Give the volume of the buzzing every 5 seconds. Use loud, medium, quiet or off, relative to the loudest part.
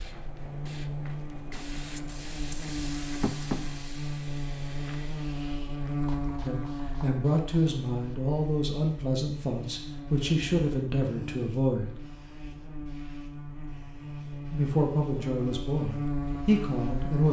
loud, loud, medium, loud.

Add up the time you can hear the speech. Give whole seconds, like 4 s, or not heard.
8 s.